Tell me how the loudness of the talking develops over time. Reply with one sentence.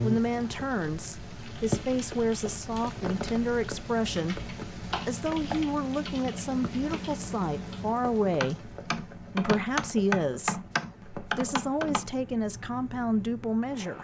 The volume of the talking stays about the same.